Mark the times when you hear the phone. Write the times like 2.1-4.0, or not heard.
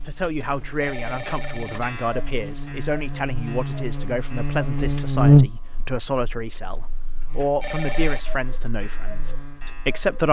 0.8-1.8, 7.6-8.2.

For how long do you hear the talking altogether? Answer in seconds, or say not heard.
10 s.